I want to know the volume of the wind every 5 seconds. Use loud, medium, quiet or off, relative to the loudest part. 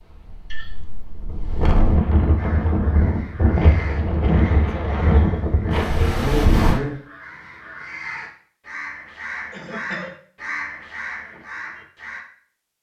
loud, loud, off.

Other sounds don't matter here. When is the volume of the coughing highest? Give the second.
6 s.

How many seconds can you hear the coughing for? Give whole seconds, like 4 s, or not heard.
2 s.